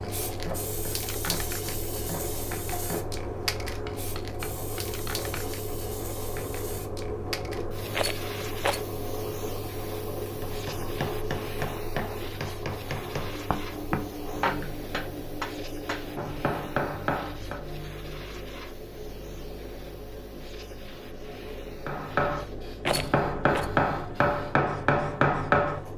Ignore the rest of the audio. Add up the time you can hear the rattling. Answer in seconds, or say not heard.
2 s.